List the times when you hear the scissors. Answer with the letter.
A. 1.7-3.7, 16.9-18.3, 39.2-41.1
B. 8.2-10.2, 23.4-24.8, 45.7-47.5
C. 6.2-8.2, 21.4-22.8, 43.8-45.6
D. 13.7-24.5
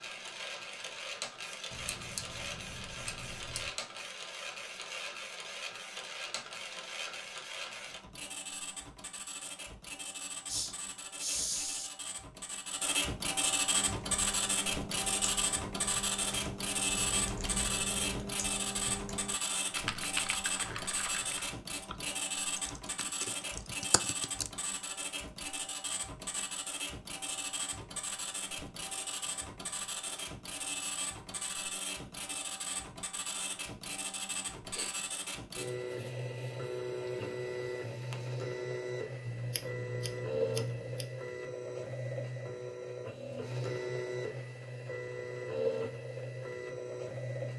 A.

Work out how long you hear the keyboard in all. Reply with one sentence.
The keyboard can be heard for 11 seconds in total.